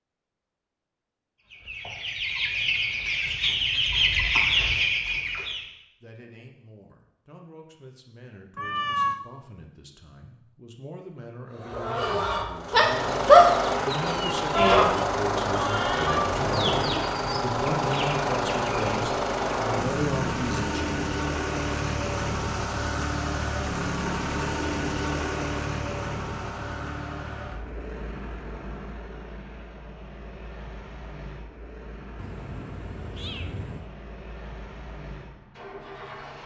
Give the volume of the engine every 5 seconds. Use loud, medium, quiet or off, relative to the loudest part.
off, off, loud, loud, loud, medium, quiet, quiet.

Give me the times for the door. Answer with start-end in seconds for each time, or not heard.
not heard.